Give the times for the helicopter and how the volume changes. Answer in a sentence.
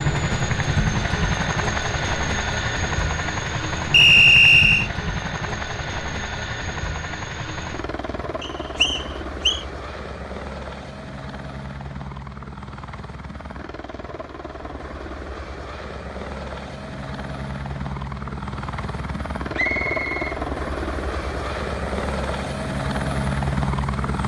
You can hear the helicopter from 0.0 to 24.2 s, getting quieter then louder.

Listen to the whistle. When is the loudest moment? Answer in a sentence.
The loudest moment of the whistle is at 4 seconds.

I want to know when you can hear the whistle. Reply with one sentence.
The whistle can be heard from 3.9 to 4.9 s, from 8.4 to 9.7 s and from 19.6 to 20.4 s.